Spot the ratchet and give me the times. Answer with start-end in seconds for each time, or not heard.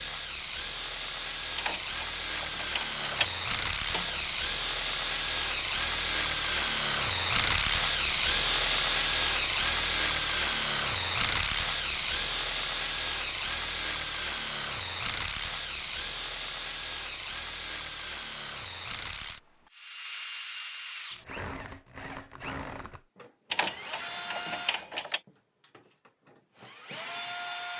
1.6-4.2, 23.5-25.2.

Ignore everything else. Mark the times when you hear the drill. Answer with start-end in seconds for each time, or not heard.
0.0-27.7.